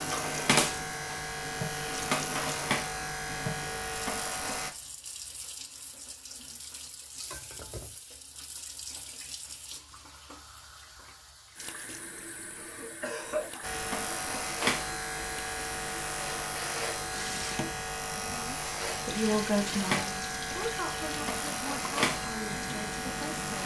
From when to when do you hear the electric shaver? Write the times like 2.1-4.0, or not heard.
0.0-4.7, 13.6-23.6.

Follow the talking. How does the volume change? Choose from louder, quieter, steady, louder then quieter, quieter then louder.
quieter.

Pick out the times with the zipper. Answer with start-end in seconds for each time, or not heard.
not heard.